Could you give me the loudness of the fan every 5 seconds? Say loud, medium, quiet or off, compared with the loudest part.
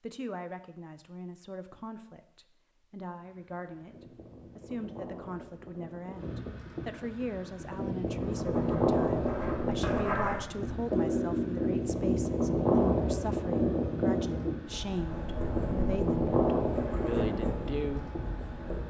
quiet, loud, loud, loud.